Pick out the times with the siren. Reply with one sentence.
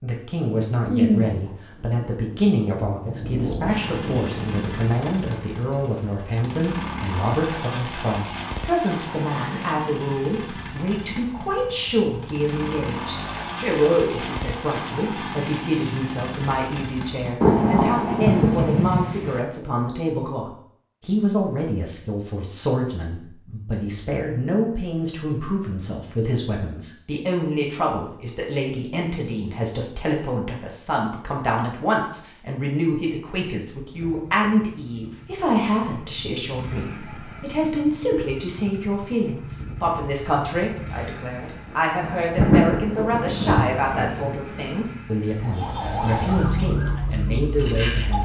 The siren can be heard from 45.4 to 48.2 s.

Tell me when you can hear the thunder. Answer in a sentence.
The thunder can be heard from 0.8 to 5.0 s, from 17.4 to 19.4 s and from 42.0 to 44.4 s.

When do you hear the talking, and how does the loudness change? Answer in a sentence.
You can hear the talking from 0.0 to 48.2 s, at a steady volume.